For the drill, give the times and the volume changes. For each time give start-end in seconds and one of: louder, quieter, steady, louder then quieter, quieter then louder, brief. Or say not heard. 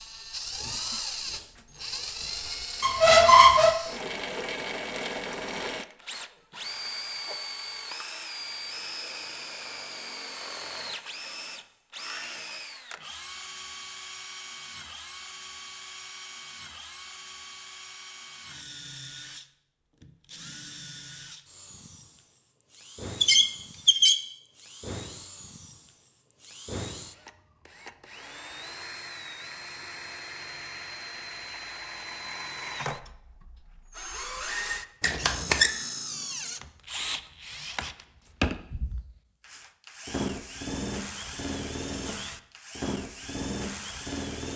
0.0-44.5 quieter then louder.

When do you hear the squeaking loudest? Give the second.
3 s.